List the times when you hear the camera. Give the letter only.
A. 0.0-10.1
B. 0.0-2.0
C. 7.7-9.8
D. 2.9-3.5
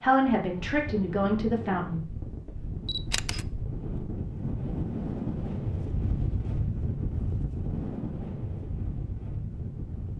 D.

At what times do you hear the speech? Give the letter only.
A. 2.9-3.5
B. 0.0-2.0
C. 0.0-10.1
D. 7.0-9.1
B.